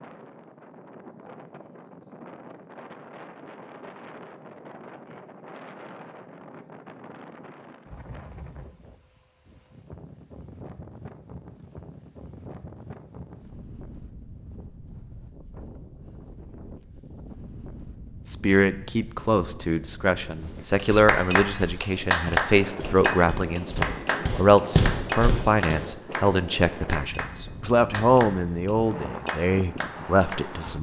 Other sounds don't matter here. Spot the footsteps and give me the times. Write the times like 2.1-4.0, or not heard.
20.4-25.9.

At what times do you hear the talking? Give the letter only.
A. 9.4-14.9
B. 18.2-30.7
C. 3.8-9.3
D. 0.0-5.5
B.